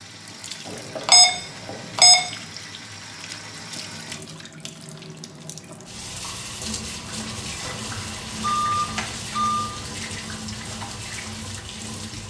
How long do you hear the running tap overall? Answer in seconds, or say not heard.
12 s.